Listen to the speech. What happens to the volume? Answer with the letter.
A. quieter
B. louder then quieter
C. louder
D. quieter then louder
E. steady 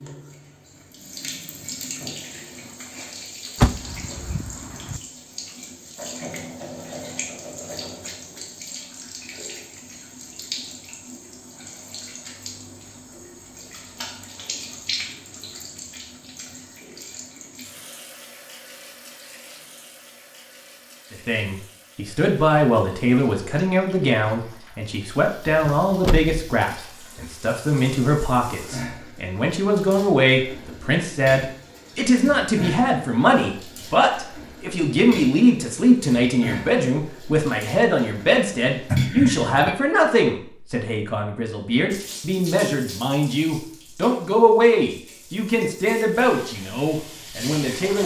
E.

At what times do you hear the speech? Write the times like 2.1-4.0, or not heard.
21.1-48.0.